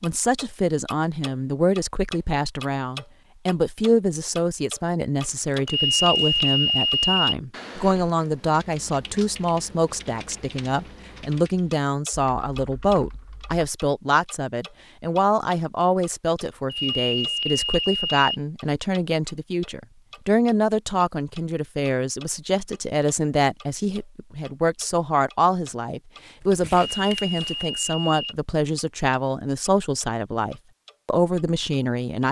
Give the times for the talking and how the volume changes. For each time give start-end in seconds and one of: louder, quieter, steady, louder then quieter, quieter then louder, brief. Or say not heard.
0.0-32.2 steady.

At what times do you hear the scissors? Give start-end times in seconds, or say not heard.
not heard.